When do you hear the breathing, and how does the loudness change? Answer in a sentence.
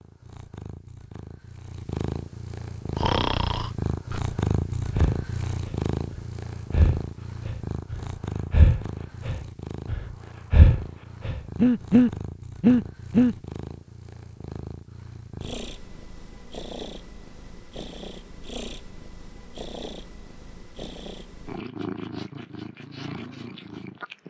You can hear the breathing from 3.0 to 13.3 s, getting louder.